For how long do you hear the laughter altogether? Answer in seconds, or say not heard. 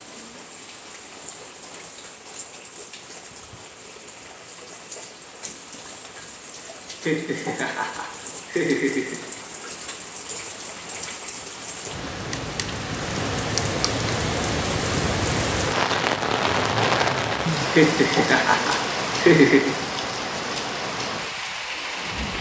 4 s.